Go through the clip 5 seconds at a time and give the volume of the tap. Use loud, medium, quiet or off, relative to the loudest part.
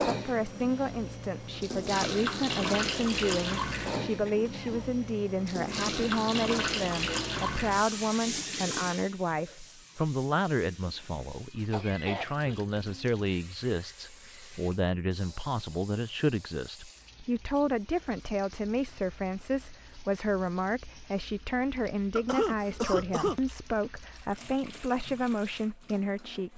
loud, loud, quiet, quiet, quiet, quiet.